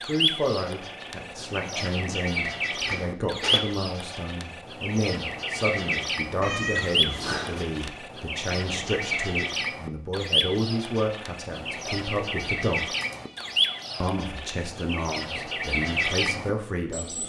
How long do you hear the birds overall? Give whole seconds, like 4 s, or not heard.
17 s.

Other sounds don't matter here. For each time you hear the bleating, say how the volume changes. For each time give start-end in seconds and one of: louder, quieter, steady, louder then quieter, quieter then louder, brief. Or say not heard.
not heard.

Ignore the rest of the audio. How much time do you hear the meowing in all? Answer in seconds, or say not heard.
3 s.